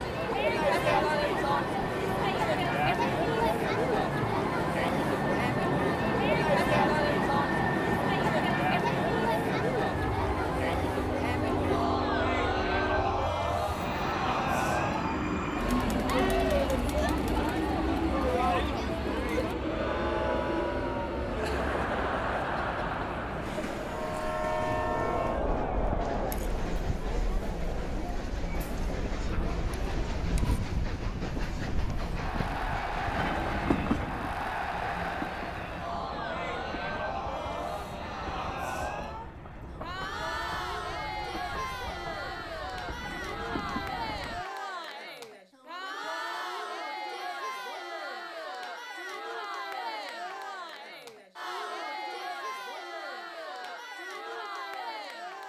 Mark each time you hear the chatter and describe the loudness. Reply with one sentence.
You can hear the chatter from 0.0 to 55.4 s, getting quieter.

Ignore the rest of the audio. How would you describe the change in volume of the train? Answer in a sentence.
The volume of the train goes down.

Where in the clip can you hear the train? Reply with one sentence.
You can hear the train from 0.0 to 44.5 s.